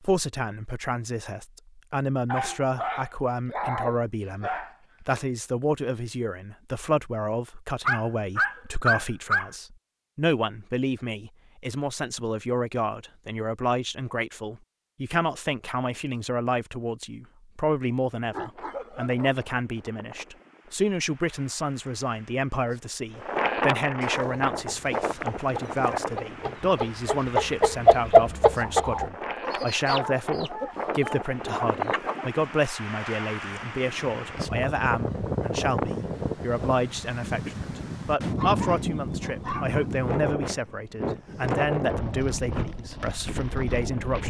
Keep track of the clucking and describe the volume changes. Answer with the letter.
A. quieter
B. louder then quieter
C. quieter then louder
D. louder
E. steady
B.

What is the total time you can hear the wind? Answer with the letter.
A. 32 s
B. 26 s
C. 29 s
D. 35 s
B.